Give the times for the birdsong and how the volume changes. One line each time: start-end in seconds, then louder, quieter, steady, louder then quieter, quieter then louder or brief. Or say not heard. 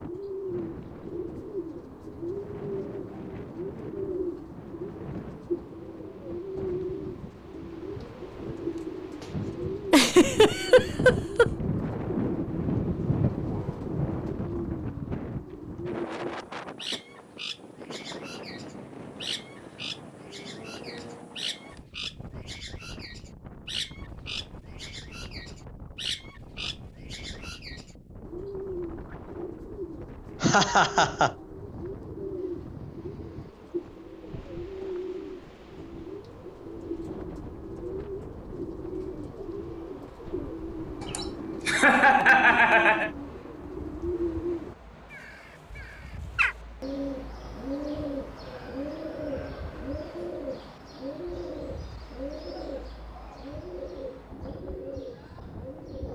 0.0-56.0 steady.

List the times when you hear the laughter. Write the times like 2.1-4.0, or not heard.
9.9-11.5, 30.4-31.3, 41.0-43.1.